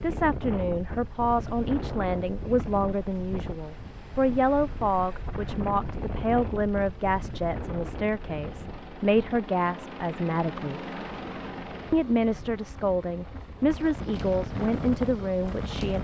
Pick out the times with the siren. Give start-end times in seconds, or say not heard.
not heard.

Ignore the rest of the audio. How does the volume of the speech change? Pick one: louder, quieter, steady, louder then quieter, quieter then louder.
steady.